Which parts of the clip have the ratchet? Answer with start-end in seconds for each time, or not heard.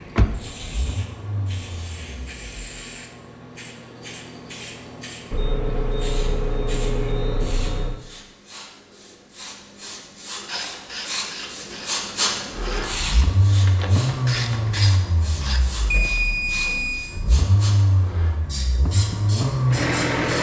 10.3-15.7.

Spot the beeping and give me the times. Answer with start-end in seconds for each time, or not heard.
5.3-8.0, 15.9-17.1.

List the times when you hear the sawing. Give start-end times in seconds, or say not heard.
not heard.